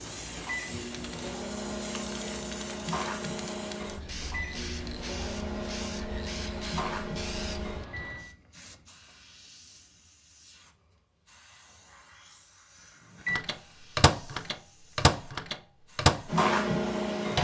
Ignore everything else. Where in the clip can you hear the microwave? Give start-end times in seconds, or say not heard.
0.0-8.3, 13.2-17.3.